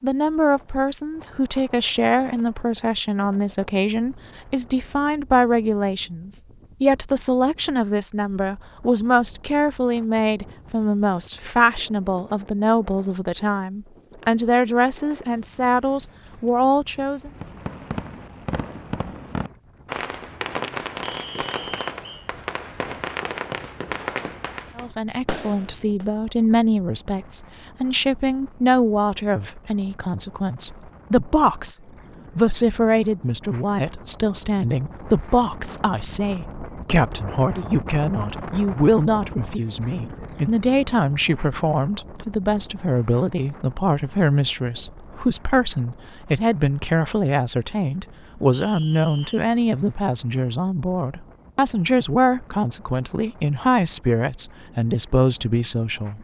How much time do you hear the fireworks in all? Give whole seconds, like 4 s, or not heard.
9 s.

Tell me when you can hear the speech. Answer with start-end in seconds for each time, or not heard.
0.0-17.3, 24.8-31.8, 32.4-56.1.